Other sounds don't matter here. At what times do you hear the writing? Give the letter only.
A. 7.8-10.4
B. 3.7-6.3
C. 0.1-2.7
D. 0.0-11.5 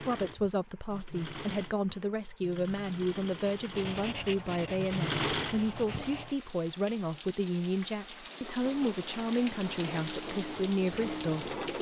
B.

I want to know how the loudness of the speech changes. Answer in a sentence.
The loudness of the speech stays about the same.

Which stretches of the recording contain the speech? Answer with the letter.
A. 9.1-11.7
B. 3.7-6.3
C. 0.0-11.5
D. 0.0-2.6
C.